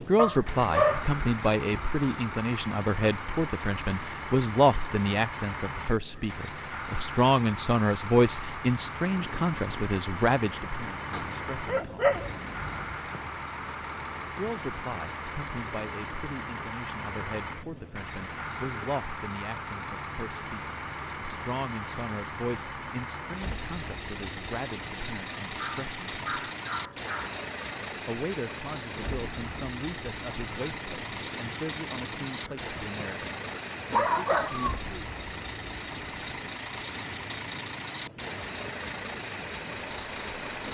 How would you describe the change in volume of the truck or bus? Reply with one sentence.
The loudness of the truck or bus stays about the same.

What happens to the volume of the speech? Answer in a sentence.
The volume of the speech goes down.